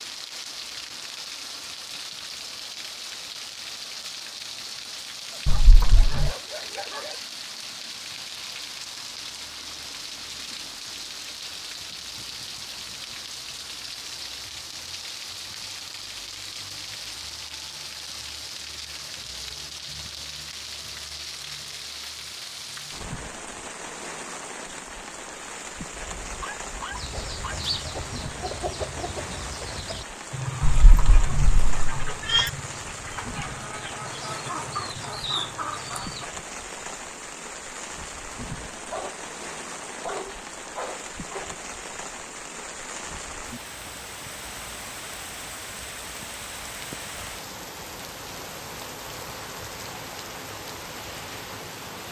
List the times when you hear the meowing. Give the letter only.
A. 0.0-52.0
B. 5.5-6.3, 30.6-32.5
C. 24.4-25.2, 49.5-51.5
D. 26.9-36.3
B.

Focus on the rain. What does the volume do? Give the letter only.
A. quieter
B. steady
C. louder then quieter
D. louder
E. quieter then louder
B.